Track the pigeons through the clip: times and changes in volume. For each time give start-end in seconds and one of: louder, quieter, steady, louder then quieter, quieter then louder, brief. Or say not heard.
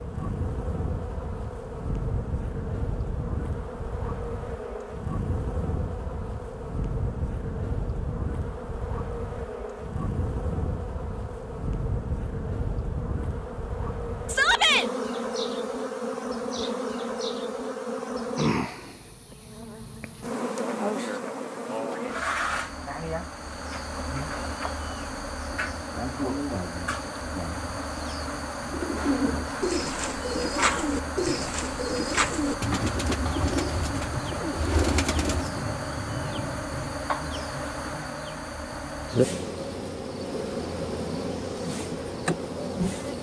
28.6-35.5 steady.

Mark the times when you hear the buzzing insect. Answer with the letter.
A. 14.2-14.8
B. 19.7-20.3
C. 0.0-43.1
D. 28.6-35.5
C.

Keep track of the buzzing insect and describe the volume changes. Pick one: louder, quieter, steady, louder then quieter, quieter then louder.
steady.